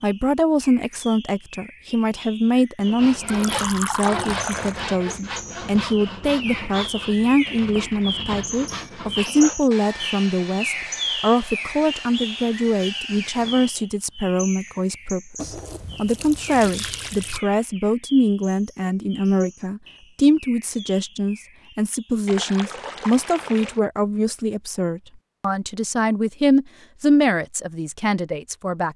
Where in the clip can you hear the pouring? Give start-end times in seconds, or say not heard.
3.2-4.8, 15.3-17.4, 22.2-23.8.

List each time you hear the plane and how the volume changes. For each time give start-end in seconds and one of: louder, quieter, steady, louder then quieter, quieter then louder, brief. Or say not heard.
not heard.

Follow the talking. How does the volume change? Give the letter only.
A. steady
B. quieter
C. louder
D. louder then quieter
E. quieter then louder
A.